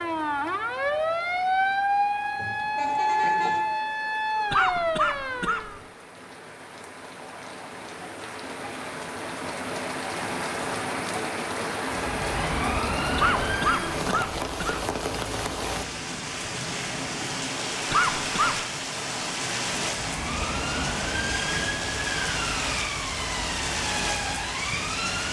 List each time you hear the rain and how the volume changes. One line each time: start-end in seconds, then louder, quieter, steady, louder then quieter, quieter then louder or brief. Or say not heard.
0.0-25.2 louder.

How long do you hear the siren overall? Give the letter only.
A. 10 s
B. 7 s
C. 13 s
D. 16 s
C.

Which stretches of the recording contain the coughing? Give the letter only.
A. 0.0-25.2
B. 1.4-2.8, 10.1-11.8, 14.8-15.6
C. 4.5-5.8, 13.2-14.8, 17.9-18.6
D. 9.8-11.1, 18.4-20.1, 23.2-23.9
C.